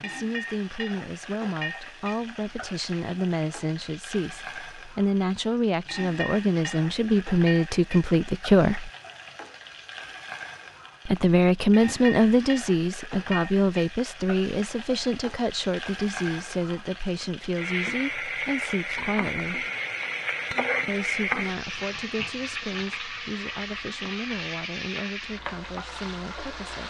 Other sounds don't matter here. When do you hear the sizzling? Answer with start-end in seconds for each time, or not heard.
0.0-26.8.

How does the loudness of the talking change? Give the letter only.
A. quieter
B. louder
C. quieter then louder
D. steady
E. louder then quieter
E.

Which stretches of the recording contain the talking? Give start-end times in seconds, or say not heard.
0.0-8.9, 11.1-19.7, 20.9-26.8.